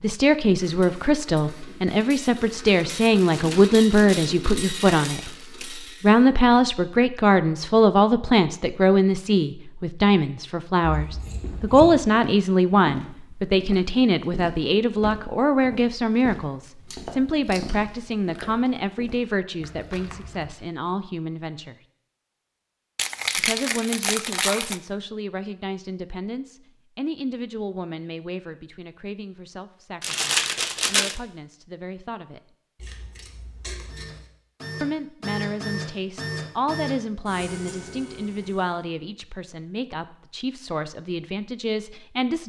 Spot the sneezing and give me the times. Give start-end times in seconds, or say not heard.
not heard.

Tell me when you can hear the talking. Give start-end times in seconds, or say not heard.
0.0-21.8, 23.4-32.4, 34.8-42.4.